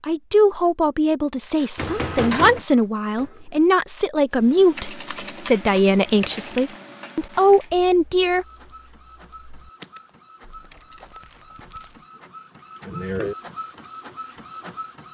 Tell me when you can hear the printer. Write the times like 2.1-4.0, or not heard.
1.6-3.6, 8.3-15.0.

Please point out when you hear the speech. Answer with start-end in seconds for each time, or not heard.
0.0-8.4.